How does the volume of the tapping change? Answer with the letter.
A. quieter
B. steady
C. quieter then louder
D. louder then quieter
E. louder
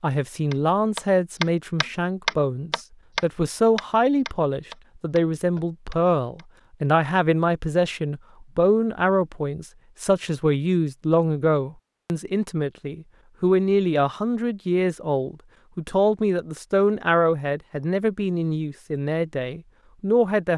A.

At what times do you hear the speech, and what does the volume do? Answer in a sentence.
The speech can be heard from 0.0 to 20.5 s, at a steady volume.